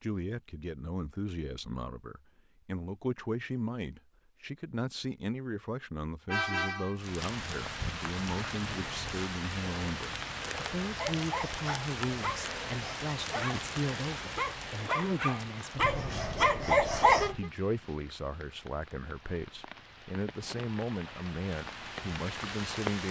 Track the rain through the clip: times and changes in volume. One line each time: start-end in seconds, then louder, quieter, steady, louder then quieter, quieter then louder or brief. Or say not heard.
7.0-23.0 quieter then louder.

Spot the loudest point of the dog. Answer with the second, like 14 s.
17 s.